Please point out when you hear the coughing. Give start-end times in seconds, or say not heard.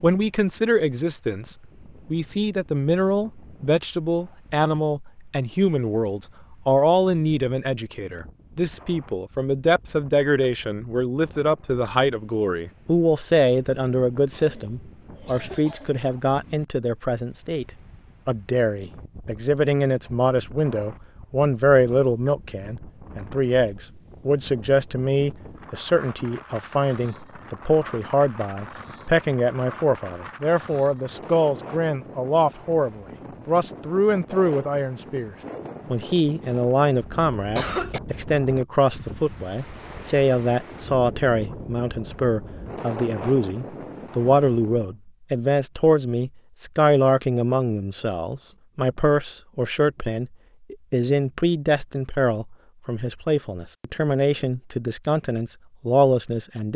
14.3-16.1, 36.7-38.0.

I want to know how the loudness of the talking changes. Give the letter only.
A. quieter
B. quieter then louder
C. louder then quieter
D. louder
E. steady
E.